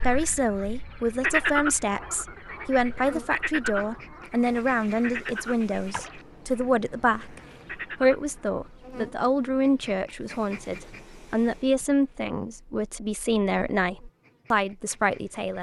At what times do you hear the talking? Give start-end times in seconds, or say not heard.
0.0-7.4, 8.0-15.5.